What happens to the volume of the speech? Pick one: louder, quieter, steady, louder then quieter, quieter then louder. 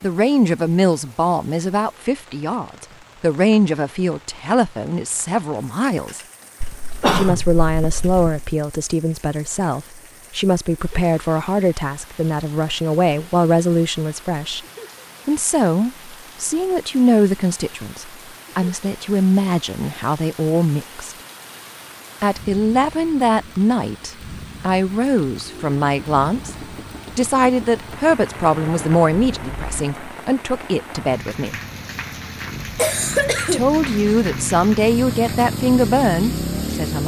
steady.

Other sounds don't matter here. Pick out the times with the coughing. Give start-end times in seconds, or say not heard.
6.6-8.5, 32.8-33.6.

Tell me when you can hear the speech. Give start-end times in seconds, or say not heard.
0.0-6.2, 7.1-14.6, 15.2-21.1, 22.2-26.6, 27.1-31.6, 33.5-37.0.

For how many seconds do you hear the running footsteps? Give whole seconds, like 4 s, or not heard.
not heard.